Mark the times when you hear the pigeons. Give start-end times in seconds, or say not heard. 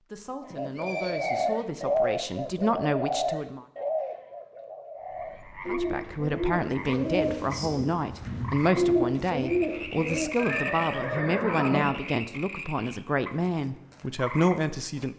0.6-10.3.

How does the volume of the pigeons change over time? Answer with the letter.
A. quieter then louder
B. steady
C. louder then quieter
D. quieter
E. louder
A.